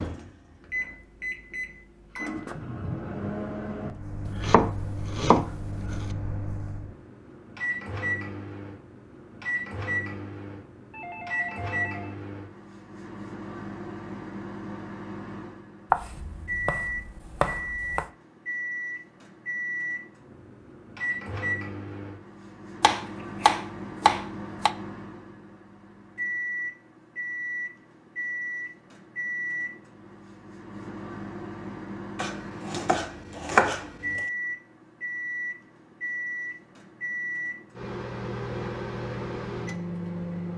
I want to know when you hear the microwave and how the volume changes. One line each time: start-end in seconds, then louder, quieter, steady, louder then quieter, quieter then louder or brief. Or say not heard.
0.0-40.5 steady.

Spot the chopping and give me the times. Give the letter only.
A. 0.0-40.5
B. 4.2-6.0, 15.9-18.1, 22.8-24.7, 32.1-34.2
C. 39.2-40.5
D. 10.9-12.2
B.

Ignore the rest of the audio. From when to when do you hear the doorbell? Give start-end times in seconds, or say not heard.
10.9-12.2.